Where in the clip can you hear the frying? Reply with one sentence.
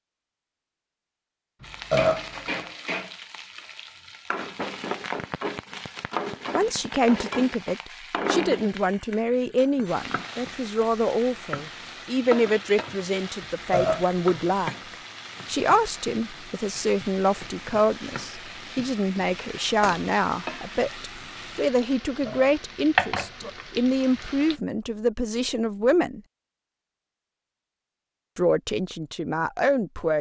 You can hear the frying from 1.6 to 24.6 s.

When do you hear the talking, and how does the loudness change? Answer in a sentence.
You can hear the talking from 6.5 to 26.2 s, at a steady volume; and briefly from 28.4 to 30.1 s.